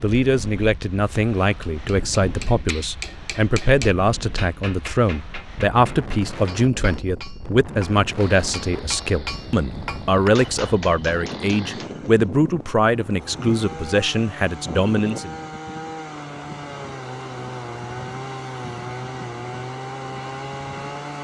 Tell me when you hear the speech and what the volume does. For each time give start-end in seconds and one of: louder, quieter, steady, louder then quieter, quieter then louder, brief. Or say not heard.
0.0-15.3 steady.